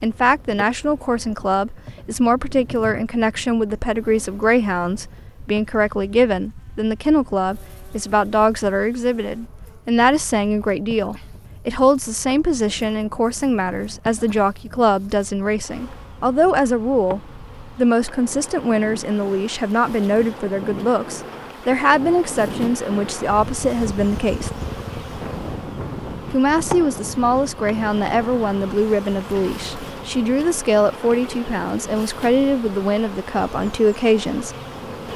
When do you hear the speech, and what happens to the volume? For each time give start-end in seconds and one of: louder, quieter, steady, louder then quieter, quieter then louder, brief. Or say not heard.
0.0-24.5 steady
26.3-34.5 steady.